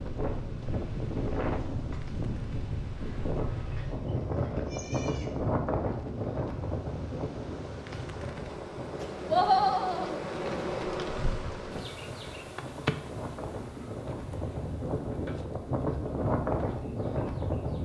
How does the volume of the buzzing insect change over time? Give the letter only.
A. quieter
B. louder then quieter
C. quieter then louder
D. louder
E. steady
B.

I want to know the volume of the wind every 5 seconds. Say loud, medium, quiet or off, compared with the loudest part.
loud, loud, medium, loud.